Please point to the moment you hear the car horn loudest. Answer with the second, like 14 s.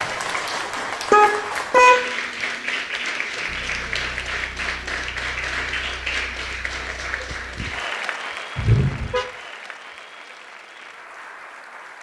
2 s.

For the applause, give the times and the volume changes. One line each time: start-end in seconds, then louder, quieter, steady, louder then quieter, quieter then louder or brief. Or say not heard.
0.0-11.9 quieter.